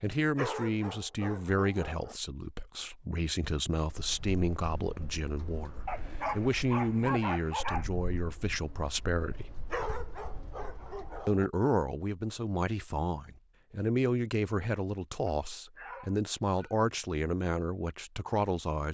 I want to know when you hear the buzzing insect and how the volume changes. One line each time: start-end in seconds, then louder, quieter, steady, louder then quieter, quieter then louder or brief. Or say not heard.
not heard.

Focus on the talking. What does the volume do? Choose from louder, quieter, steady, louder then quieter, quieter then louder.
steady.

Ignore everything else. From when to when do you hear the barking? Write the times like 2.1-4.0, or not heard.
0.3-2.1, 5.8-7.8, 9.7-11.4, 15.2-16.8.